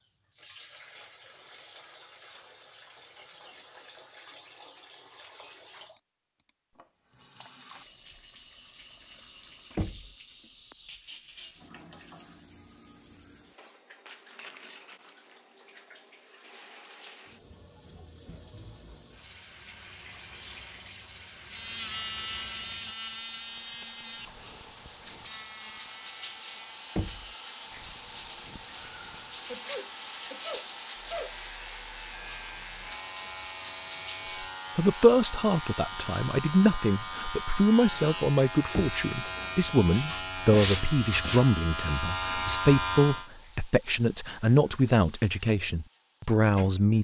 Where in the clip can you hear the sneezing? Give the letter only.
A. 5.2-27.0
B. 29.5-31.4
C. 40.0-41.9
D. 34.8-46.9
B.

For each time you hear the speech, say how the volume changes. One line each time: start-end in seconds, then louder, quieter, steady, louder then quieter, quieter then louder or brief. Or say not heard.
34.8-46.9 steady.